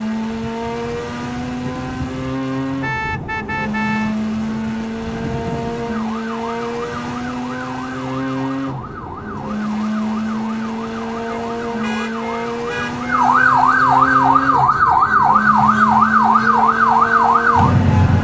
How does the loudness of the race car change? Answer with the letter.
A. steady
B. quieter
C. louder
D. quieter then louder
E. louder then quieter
A.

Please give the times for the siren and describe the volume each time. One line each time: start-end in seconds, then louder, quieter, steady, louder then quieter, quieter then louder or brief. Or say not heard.
0.2-18.2 louder.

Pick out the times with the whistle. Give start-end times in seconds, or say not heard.
not heard.